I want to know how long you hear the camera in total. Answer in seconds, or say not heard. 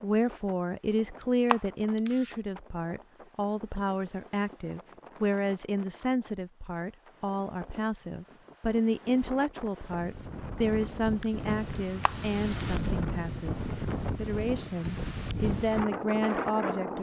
2 s.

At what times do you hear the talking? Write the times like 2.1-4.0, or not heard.
0.0-13.6, 14.2-16.9.